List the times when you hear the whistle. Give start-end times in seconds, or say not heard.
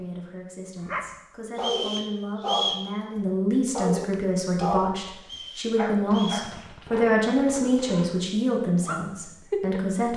1.6-2.9, 5.2-6.5.